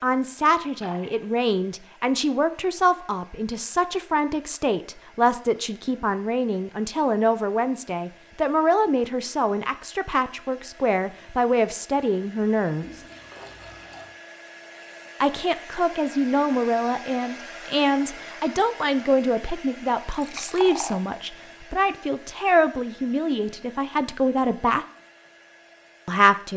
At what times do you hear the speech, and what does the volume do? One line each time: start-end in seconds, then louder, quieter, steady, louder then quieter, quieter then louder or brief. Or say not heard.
0.0-13.0 steady
15.2-24.9 steady
26.1-26.5 brief.